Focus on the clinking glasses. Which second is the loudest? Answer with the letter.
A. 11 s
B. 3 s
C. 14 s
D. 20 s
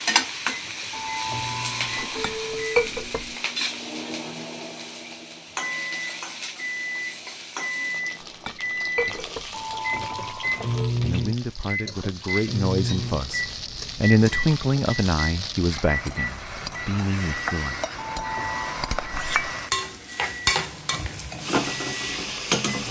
B.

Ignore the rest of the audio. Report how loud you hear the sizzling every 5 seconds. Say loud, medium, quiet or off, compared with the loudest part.
loud, medium, medium, medium, loud.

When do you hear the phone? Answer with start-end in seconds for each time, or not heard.
0.9-2.9, 9.5-10.9, 17.9-19.1.